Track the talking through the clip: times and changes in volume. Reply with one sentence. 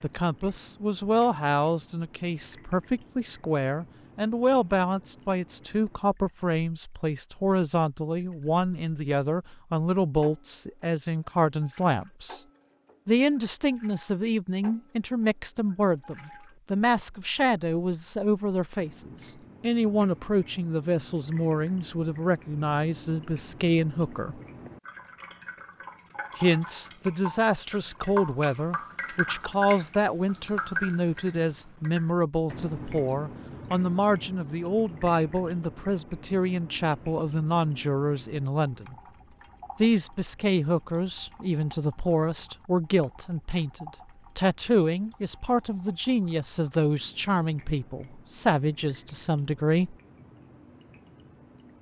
The talking can be heard from 0.0 to 12.4 s, at a steady volume; from 13.1 to 24.4 s, at a steady volume; from 26.4 to 39.0 s, at a steady volume; and from 39.8 to 50.0 s, at a steady volume.